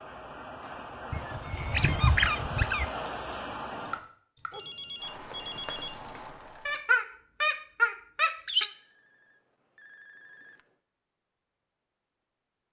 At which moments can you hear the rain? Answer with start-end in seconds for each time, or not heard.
0.0-6.8.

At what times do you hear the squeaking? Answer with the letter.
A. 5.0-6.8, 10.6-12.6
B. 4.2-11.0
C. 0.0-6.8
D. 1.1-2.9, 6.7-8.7
D.